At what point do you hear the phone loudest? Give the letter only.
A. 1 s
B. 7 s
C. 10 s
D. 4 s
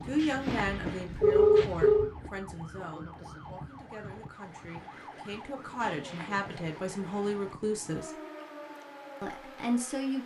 A.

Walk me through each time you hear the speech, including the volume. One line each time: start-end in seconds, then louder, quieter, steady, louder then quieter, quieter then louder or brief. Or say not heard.
0.1-8.2 quieter then louder
9.2-10.2 brief.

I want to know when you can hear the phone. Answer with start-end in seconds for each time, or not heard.
0.2-2.1, 5.8-6.5.